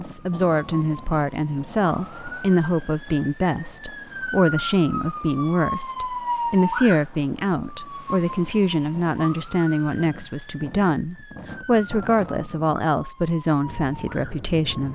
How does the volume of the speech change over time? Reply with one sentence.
The loudness of the speech stays about the same.